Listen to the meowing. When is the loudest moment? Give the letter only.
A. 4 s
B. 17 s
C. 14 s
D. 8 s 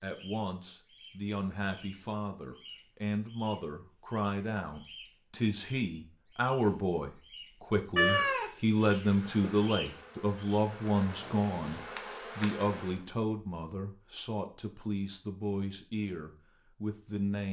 D.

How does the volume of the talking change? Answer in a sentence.
The loudness of the talking goes up, then down.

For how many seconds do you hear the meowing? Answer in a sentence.
The meowing can be heard for 2 seconds in total.